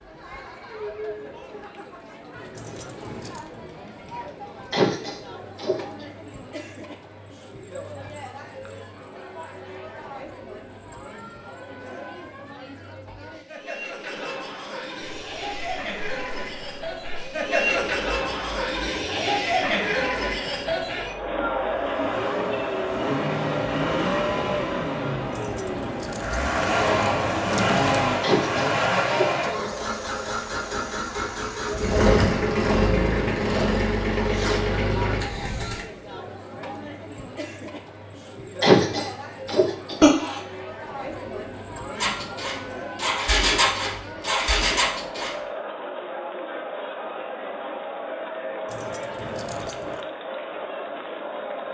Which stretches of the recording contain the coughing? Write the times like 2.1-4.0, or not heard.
4.7-6.0, 28.2-29.2, 38.6-40.4.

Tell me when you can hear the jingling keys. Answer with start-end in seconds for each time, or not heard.
2.5-3.5, 25.3-28.0, 48.6-50.0.